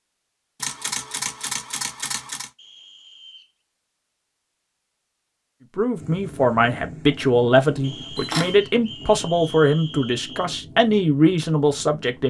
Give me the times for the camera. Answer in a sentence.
You can hear the camera from 0.6 to 2.5 s and from 8.2 to 8.6 s.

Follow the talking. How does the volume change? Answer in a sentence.
The volume of the talking stays about the same.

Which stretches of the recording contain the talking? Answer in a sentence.
The talking can be heard from 5.8 to 12.2 s.